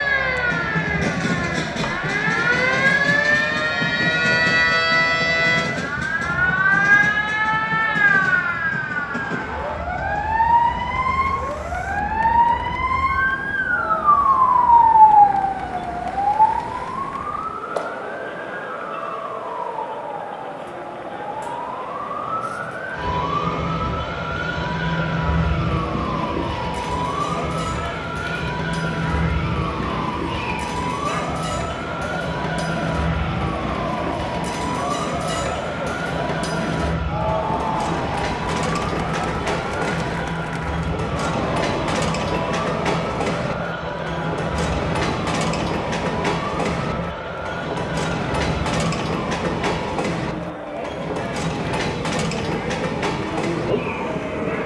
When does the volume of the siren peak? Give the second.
15 s.